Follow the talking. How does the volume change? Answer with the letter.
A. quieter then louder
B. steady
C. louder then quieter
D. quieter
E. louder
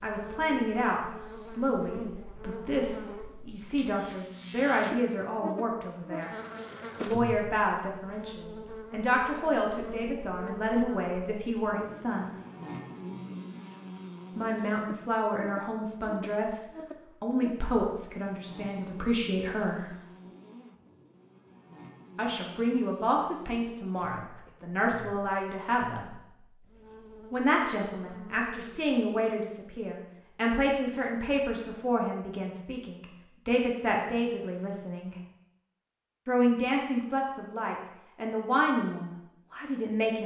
B.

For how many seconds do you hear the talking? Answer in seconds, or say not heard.
33 s.